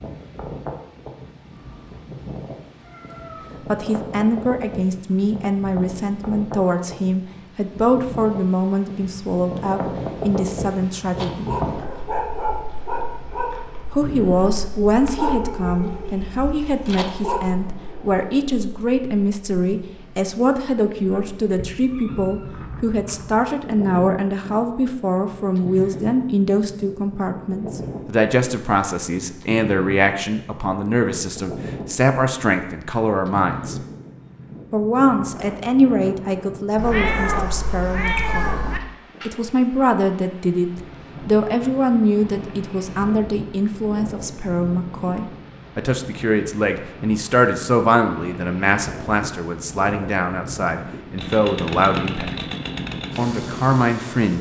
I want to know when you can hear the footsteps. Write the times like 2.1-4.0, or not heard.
not heard.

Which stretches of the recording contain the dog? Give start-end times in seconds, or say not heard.
11.2-17.4.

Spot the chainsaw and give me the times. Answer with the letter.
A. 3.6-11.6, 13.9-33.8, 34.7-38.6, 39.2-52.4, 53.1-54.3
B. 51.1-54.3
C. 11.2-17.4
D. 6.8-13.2
B.